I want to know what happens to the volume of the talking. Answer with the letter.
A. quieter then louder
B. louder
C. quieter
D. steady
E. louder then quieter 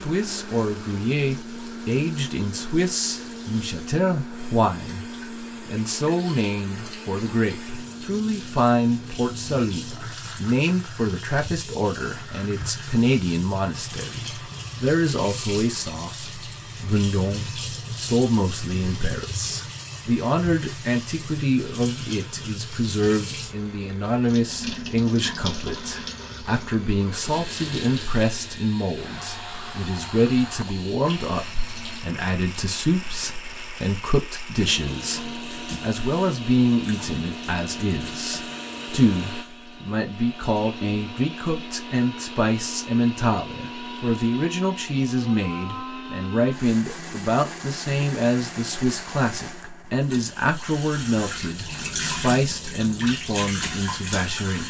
D.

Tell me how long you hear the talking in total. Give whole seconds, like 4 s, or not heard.
54 s.